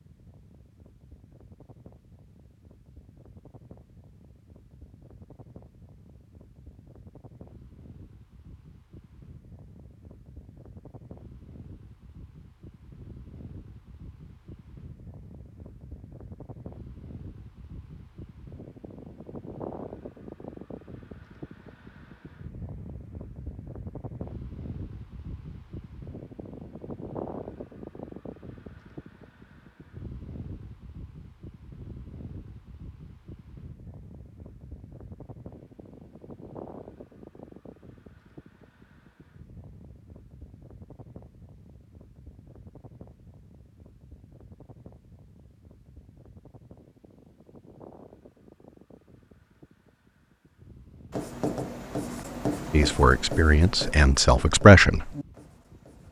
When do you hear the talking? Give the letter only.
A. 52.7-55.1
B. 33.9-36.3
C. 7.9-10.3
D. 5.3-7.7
A.